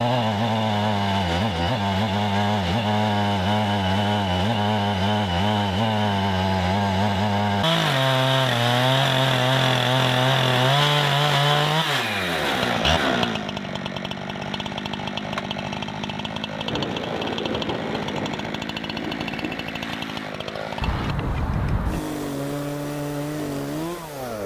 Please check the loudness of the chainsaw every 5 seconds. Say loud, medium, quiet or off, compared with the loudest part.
loud, loud, loud, medium, medium.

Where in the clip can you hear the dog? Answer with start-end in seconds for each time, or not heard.
not heard.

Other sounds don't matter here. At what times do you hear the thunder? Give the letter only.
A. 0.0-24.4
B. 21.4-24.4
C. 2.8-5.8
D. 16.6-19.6
D.